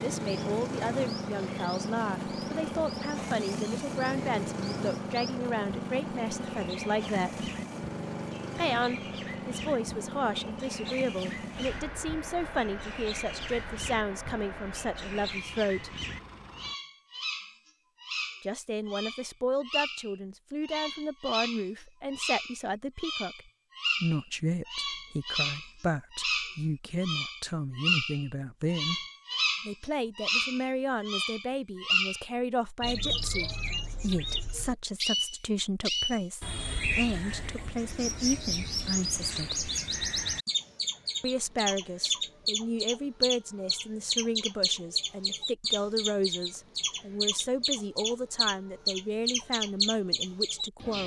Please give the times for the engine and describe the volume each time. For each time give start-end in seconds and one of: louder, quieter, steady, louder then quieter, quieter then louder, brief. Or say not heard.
0.0-16.8 quieter.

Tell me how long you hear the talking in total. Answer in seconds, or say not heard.
45 s.